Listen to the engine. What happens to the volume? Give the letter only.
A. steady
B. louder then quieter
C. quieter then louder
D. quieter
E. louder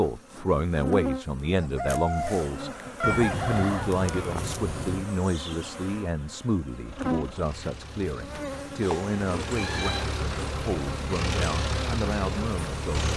E.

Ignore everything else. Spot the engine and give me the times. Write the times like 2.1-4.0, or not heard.
6.8-13.1.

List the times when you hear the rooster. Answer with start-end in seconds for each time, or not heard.
1.6-4.5.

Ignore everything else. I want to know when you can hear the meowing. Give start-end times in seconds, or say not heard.
3.0-5.0, 8.8-10.2.